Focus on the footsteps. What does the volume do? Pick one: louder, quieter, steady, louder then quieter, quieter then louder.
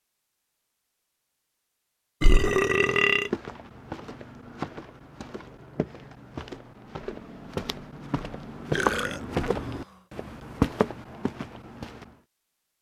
louder.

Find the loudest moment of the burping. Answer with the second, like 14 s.
3 s.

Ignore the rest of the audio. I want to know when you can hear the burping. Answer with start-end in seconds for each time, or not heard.
2.2-3.3, 8.7-9.7.